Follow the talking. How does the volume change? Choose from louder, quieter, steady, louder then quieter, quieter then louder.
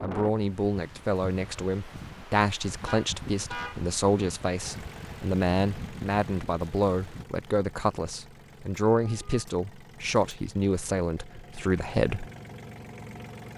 steady.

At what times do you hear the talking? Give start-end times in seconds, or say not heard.
0.0-12.2.